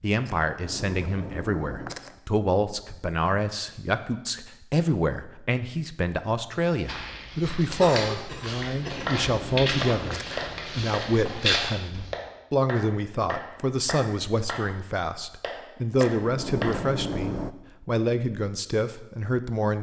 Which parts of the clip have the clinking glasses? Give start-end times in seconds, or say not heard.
not heard.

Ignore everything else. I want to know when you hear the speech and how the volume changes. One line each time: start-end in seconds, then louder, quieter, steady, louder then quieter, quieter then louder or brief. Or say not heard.
0.0-19.7 steady.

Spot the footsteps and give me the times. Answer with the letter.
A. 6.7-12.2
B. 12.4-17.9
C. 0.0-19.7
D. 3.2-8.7
A.